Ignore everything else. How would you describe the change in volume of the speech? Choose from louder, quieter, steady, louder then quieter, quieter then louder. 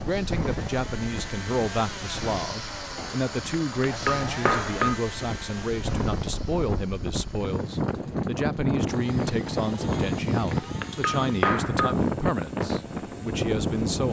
steady.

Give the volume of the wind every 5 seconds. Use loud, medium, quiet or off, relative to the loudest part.
medium, loud, loud.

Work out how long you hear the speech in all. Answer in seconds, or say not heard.
14 s.